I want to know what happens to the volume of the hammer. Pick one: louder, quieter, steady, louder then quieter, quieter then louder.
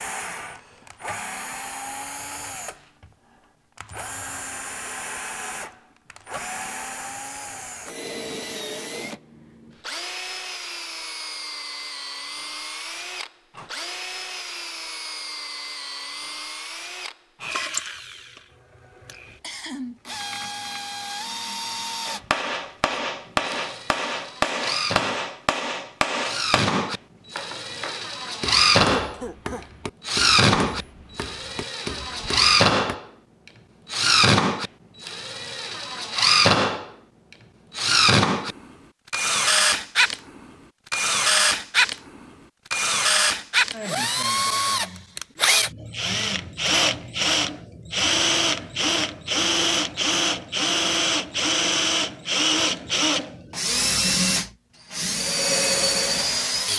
quieter.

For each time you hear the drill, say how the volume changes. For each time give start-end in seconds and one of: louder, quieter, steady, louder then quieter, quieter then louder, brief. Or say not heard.
0.0-56.7 louder.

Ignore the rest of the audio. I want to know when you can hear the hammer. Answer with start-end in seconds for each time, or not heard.
22.1-33.0.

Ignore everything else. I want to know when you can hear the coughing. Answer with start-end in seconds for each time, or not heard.
19.1-20.0, 29.0-29.7.